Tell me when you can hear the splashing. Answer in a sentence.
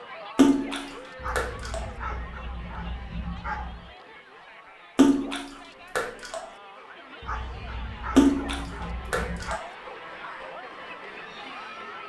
You can hear the splashing from 0.3 to 1.9 s, from 5.0 to 6.5 s and from 8.2 to 9.7 s.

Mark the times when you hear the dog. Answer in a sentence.
You can hear the dog from 1.1 to 4.0 s and from 7.2 to 9.6 s.